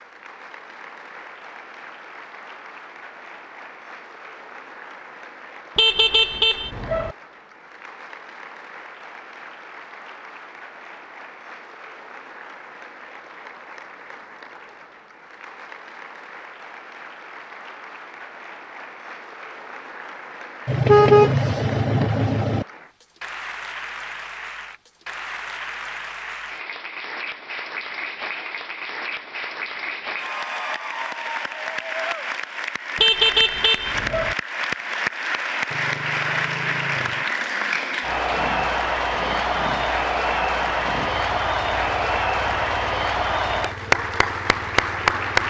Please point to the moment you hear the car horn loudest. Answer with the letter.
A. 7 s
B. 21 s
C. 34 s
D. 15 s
B.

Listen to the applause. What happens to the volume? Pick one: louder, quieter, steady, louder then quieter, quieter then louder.
louder.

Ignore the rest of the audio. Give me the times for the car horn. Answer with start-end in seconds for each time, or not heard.
5.8-7.2, 20.6-22.6, 33.0-34.4.